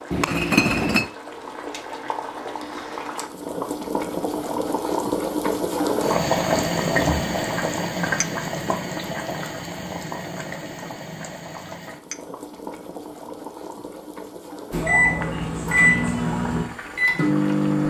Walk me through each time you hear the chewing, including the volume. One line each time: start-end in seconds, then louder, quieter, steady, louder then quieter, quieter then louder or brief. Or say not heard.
not heard.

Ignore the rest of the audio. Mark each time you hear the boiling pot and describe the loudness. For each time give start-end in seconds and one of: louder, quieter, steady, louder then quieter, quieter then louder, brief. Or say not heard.
0.0-17.8 louder then quieter.